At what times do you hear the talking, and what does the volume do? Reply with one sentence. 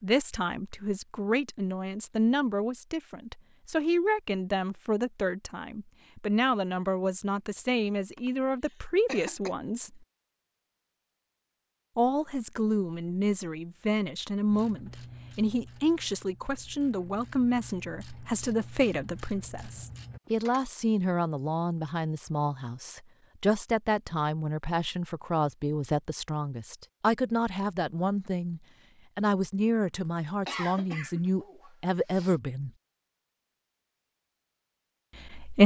The talking can be heard from 0.0 to 10.0 s, at a steady volume; from 11.9 to 32.7 s, at a steady volume; and briefly from 35.1 to 35.6 s.